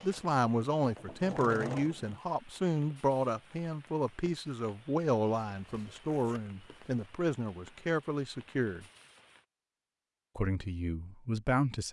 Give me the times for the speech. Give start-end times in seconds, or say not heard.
0.0-8.8, 10.3-11.8.